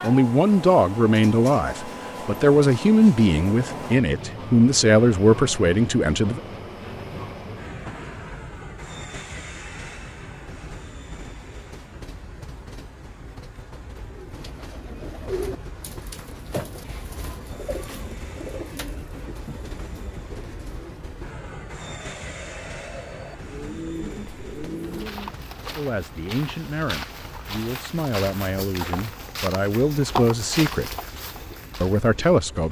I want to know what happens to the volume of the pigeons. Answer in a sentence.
The loudness of the pigeons goes down, then up.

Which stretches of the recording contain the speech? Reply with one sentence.
The speech can be heard from 0.0 to 6.4 s, from 25.8 to 30.9 s and from 31.8 to 32.6 s.